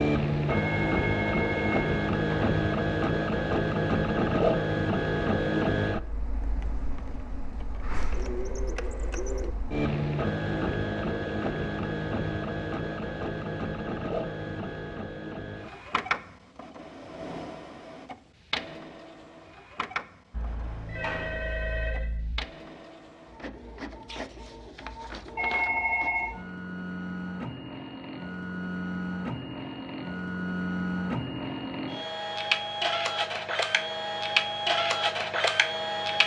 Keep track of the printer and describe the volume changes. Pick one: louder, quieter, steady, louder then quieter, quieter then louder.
quieter then louder.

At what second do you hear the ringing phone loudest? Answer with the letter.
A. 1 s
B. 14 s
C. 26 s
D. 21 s
C.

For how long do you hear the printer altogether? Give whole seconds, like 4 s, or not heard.
36 s.